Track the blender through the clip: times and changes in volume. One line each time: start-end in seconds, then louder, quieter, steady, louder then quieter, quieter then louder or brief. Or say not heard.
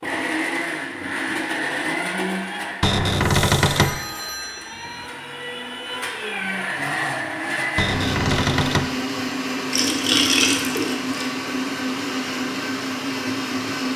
0.0-13.9 quieter then louder.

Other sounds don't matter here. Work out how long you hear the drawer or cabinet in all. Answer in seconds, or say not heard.
2 s.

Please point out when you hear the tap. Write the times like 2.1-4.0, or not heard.
9.7-11.1.